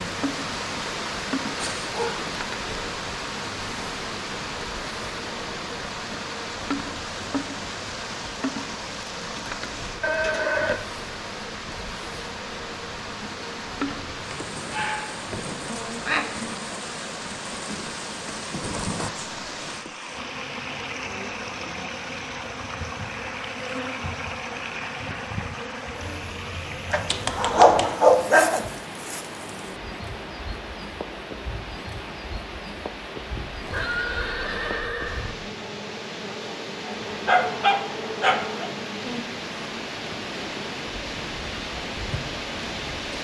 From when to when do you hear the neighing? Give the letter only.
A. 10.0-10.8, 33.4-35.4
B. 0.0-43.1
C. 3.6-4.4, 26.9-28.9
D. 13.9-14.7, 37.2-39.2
A.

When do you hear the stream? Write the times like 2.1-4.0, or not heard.
0.0-43.1.